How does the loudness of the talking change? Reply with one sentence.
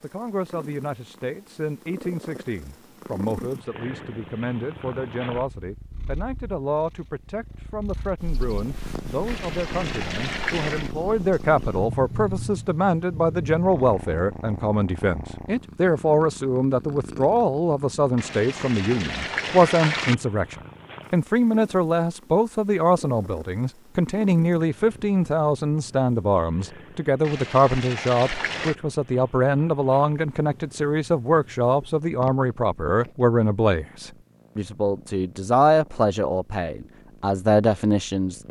The loudness of the talking goes up.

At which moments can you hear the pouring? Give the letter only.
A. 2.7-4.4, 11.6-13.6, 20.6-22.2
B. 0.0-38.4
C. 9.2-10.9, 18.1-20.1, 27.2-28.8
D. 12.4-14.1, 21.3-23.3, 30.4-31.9
C.